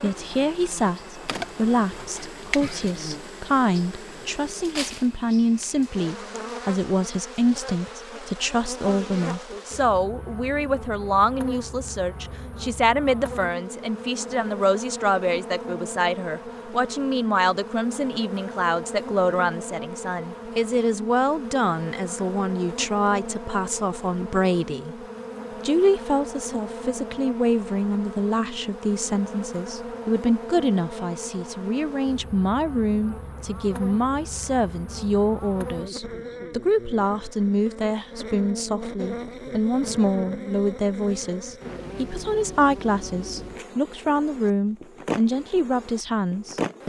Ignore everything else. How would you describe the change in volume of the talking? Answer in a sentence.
The volume of the talking stays about the same.